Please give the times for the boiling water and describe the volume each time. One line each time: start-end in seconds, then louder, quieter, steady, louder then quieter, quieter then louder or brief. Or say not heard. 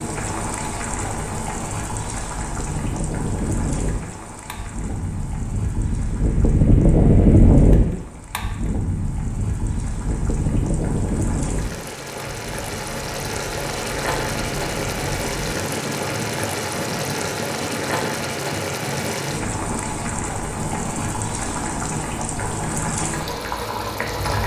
0.0-24.4 quieter then louder.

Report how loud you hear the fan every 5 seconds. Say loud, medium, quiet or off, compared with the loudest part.
medium, loud, medium, quiet, quiet.